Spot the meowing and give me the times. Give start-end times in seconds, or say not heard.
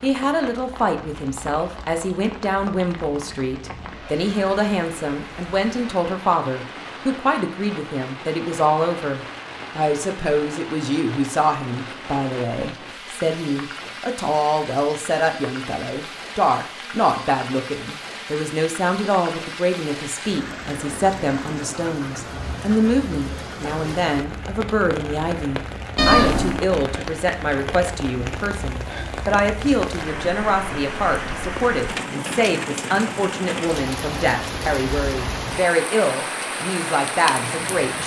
25.9-26.6.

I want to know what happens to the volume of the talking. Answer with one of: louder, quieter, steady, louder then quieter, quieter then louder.
steady.